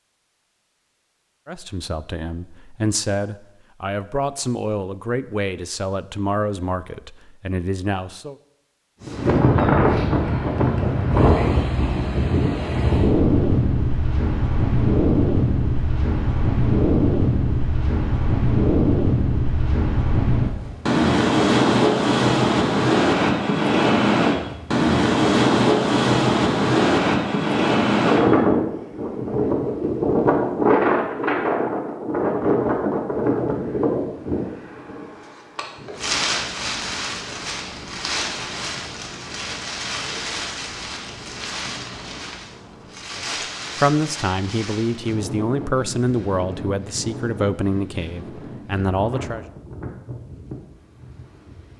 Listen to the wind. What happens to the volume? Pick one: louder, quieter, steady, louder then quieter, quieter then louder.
quieter.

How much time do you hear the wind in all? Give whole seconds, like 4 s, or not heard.
43 s.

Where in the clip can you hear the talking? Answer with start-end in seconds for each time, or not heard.
1.4-8.3, 43.1-49.5.